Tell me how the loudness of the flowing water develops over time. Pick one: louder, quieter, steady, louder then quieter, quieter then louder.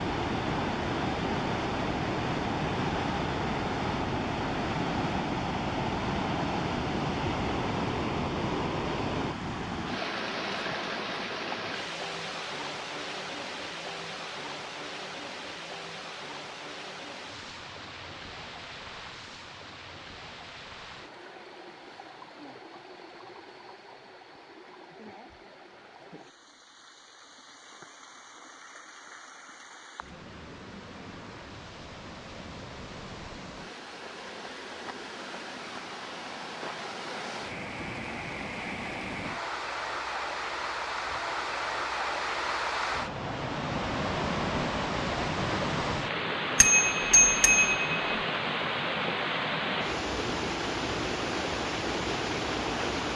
quieter then louder.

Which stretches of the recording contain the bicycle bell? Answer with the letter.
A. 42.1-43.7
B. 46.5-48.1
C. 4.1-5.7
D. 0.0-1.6
B.